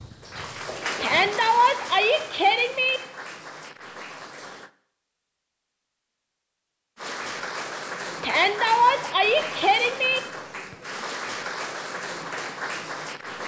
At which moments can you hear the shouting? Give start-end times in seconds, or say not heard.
1.0-3.0, 8.2-10.2.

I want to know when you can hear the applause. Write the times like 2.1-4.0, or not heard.
0.0-4.7, 7.0-13.4.